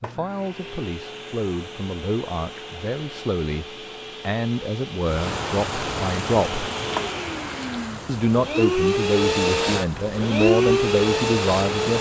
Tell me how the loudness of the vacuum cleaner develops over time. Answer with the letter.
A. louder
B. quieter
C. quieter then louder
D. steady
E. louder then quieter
A.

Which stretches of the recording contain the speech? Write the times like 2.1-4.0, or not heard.
0.0-6.7, 8.1-11.9.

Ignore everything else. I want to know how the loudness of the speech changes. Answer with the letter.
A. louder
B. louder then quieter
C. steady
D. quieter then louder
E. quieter
A.